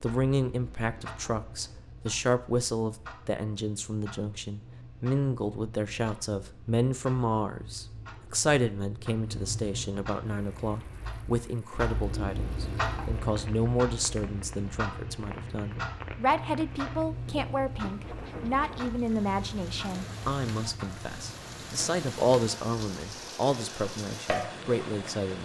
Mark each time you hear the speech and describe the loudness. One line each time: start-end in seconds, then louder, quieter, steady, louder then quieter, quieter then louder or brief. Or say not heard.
0.0-25.4 steady.